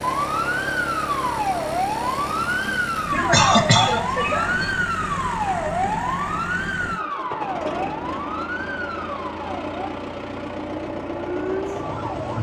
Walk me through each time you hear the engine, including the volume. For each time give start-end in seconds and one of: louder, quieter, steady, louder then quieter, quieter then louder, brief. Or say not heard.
0.0-12.3 steady.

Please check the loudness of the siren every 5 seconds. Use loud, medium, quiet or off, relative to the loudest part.
loud, loud, medium.